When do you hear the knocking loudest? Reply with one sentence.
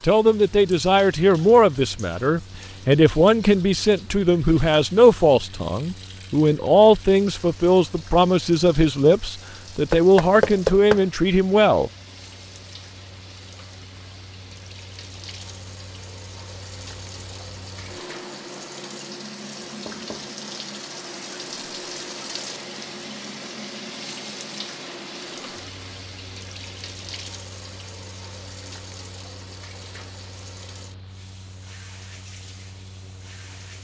The volume of the knocking peaks at 11 seconds.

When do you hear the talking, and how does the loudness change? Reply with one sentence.
You can hear the talking from 0.0 to 11.9 s, at a steady volume.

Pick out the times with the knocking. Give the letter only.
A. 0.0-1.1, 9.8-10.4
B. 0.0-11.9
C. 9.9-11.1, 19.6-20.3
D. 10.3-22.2
C.